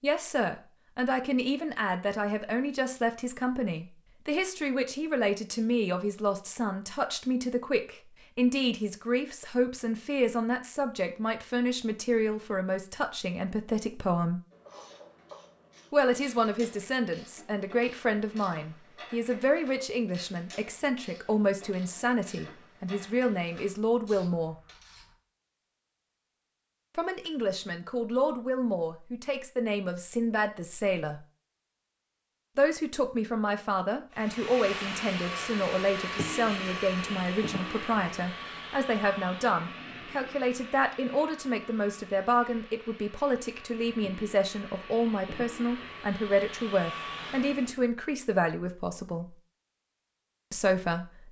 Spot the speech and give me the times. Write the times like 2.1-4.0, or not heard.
0.0-14.4, 15.9-24.6, 26.9-31.2, 32.5-49.2, 50.5-51.2.